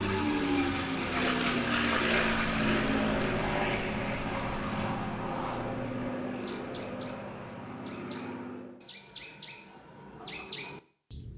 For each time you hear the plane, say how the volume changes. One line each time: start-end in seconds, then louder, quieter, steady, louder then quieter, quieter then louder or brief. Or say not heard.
0.0-8.8 quieter.